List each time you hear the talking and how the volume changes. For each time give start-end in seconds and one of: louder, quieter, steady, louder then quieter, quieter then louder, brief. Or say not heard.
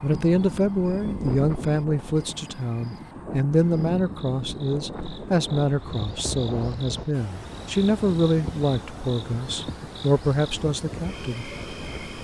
0.0-11.5 steady.